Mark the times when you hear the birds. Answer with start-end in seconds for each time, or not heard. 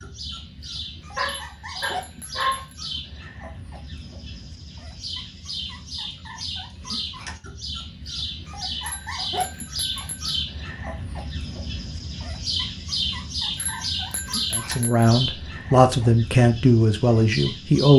0.0-17.9.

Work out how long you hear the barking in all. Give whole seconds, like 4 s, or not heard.
2 s.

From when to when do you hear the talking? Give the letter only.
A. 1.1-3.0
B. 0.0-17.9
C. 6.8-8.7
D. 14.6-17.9
D.